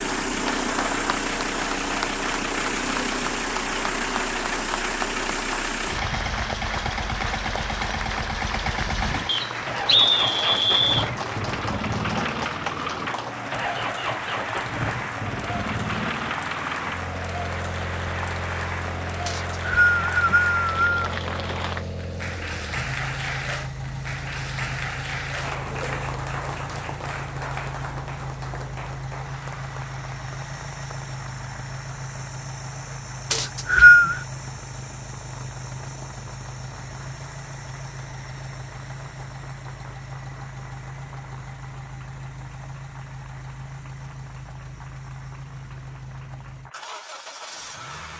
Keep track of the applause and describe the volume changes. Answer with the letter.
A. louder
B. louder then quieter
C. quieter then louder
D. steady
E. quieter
E.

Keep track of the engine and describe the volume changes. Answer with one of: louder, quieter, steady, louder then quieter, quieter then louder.
quieter.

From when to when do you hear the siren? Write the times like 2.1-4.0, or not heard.
not heard.